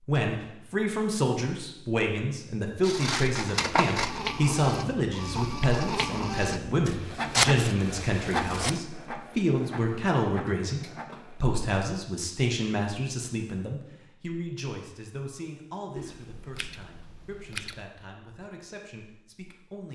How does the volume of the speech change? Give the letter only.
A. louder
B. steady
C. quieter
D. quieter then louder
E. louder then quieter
C.